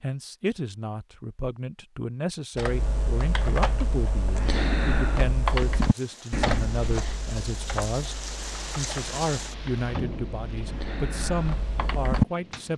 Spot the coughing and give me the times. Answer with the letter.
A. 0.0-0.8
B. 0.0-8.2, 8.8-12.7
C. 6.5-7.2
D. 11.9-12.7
C.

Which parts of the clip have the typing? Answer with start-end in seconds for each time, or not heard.
2.5-12.6.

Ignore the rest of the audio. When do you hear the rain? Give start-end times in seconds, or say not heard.
5.5-12.7.